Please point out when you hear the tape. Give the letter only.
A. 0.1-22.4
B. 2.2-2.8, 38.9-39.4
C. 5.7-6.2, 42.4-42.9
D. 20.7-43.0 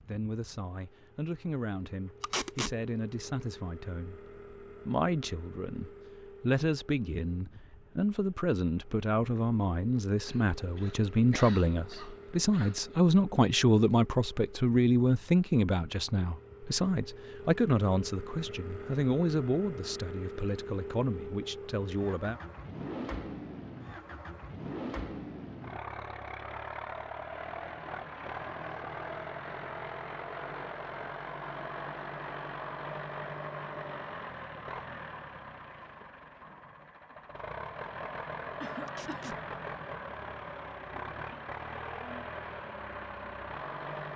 B.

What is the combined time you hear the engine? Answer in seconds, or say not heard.
44 s.